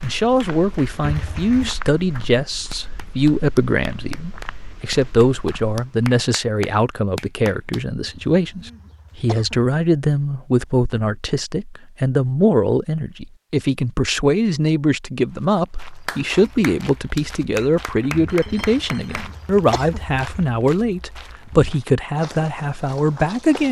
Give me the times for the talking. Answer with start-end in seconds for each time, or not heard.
0.0-23.6.